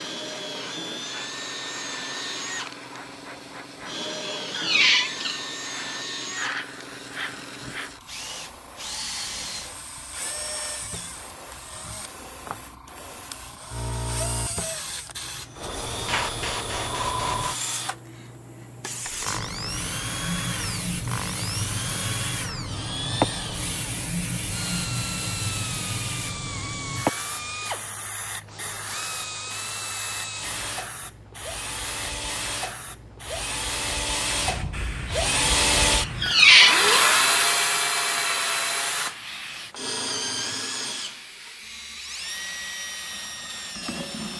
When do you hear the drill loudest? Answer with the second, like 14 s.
37 s.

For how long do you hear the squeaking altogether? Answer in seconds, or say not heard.
2 s.